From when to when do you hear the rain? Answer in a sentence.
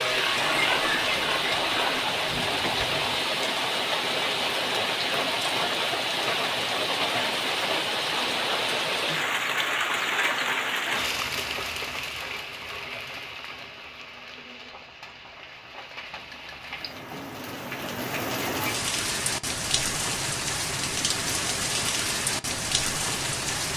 The rain can be heard from 0.0 to 23.7 s.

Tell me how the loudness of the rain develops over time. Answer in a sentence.
The volume of the rain goes down, then up.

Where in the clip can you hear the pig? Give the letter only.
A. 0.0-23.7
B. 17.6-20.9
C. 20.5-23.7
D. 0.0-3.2
D.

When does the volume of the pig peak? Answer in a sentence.
The volume of the pig peaks at 1 second.